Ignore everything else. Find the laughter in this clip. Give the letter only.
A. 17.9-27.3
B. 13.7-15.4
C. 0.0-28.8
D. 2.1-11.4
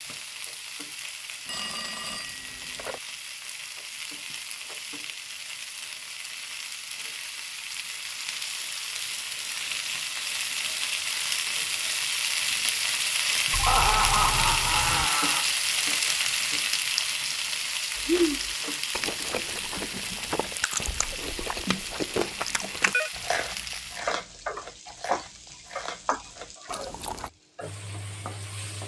B.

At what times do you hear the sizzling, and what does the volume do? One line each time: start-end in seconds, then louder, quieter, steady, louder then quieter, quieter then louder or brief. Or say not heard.
0.0-28.8 louder then quieter.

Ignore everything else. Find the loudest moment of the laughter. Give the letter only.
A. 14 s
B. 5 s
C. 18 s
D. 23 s
A.